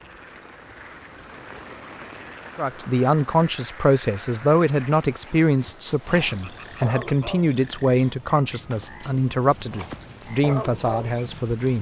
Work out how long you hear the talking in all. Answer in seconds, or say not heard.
9 s.